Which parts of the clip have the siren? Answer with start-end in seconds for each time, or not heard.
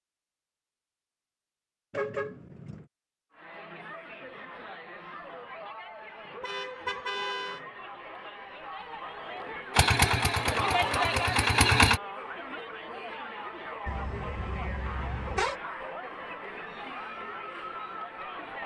not heard.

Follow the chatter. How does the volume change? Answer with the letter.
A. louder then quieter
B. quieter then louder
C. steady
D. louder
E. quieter
A.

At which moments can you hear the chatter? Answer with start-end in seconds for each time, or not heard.
3.3-18.6.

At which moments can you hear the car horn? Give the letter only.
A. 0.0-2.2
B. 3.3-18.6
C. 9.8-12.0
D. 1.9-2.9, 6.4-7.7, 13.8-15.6
D.